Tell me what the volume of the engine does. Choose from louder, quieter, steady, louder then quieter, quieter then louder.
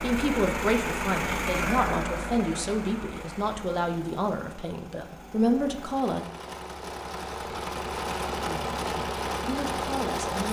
quieter then louder.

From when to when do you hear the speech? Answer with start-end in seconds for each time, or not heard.
0.0-6.2, 8.4-10.4.